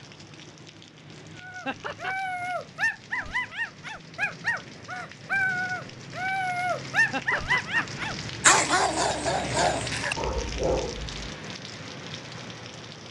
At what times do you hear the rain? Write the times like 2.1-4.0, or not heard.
0.0-13.0.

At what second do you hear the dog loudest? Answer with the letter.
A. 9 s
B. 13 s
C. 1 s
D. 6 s
A.